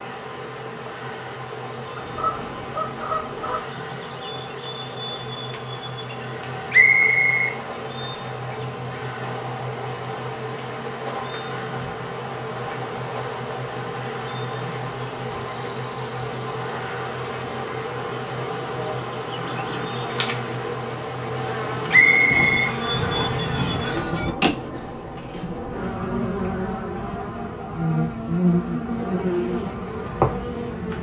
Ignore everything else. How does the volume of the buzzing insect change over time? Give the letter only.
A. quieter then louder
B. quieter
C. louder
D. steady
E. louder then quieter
C.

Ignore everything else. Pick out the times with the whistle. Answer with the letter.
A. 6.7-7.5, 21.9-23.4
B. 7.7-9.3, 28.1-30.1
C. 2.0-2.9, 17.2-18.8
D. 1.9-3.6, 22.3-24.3
A.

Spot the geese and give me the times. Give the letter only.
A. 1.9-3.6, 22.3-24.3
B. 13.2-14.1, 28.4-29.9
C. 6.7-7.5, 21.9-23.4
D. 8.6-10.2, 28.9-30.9
A.